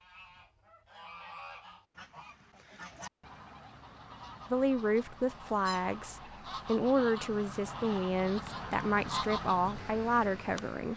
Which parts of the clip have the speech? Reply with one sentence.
You can hear the speech from 4.5 to 10.9 s.